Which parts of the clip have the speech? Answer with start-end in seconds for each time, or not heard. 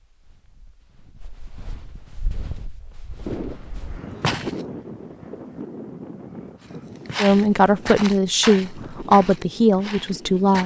7.2-10.6.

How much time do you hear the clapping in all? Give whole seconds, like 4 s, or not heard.
not heard.